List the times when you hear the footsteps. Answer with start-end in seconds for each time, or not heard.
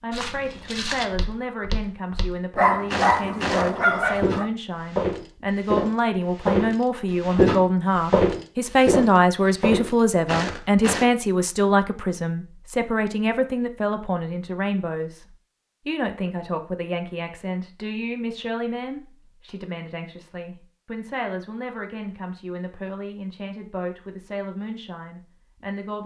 0.1-11.1.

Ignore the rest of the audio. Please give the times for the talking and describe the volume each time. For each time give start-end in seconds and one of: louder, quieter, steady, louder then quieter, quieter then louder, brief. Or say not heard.
0.0-26.0 louder then quieter.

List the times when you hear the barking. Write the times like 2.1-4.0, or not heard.
2.5-4.5.